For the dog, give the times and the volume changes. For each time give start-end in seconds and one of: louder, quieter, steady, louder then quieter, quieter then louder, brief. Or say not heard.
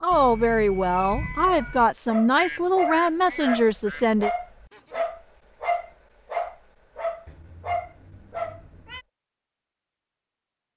1.4-8.8 steady.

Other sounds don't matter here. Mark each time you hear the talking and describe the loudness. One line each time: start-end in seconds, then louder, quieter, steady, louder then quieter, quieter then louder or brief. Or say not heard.
0.0-4.3 steady.